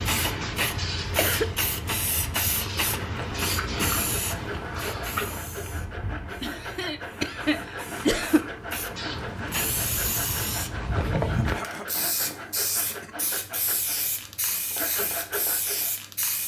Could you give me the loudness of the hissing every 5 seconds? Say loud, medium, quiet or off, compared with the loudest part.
loud, medium, loud, medium.